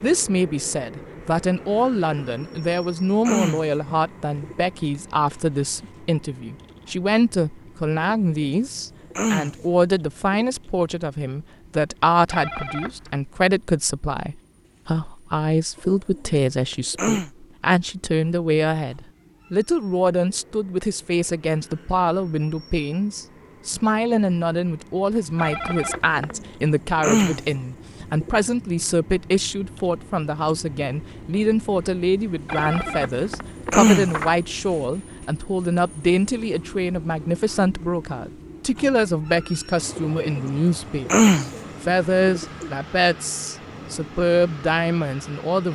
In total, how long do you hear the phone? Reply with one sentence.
The phone can be heard for 4 seconds in total.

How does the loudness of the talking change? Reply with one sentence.
The loudness of the talking stays about the same.